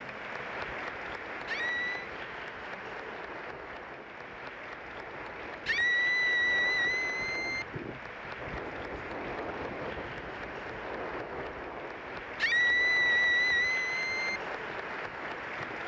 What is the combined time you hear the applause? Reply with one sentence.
You can hear the applause for 16 seconds altogether.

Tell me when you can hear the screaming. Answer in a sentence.
The screaming can be heard from 1.4 to 2.1 s, from 5.7 to 7.7 s and from 12.3 to 14.4 s.